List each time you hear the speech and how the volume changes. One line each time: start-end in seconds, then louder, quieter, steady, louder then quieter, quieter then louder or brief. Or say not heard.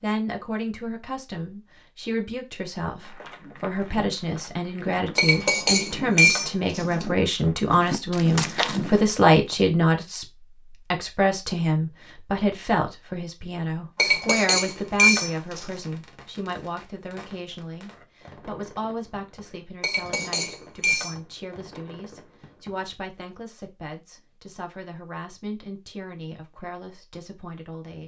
0.0-28.0 louder then quieter.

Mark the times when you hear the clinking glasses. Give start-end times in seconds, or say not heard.
5.2-7.0, 13.9-15.7, 19.8-21.1.